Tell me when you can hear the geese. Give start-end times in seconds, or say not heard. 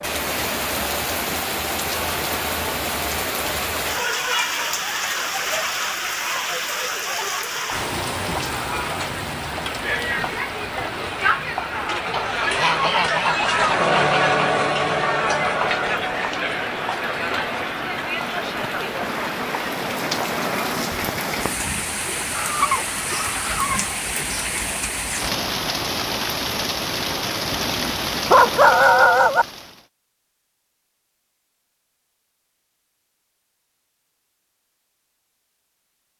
12.1-14.3, 22.3-23.9.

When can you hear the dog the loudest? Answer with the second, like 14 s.
29 s.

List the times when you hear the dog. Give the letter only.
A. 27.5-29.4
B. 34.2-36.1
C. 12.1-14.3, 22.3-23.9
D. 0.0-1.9
A.